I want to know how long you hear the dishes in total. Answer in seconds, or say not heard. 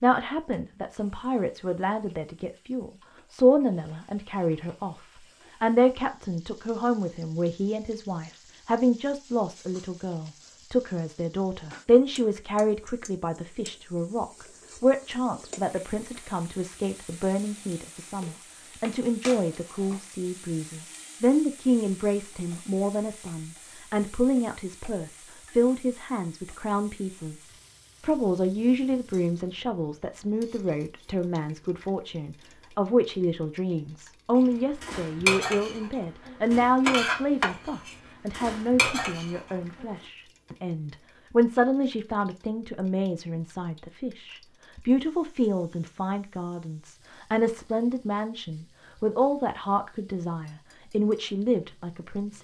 5 s.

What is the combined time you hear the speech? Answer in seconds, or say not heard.
52 s.